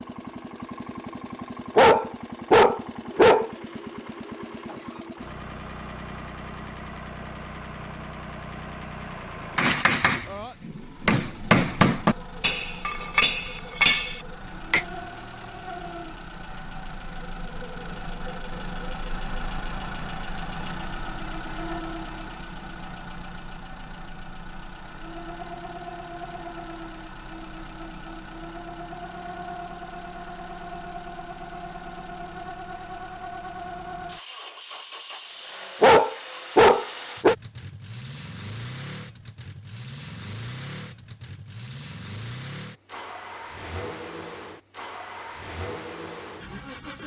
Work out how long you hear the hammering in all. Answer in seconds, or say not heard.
5 s.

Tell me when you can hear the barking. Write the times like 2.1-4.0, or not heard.
1.8-3.5, 35.8-37.4.